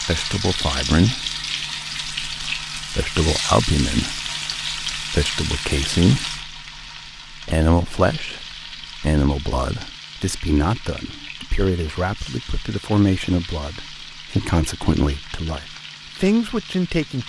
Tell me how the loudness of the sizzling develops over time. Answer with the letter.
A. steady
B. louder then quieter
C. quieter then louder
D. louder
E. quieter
E.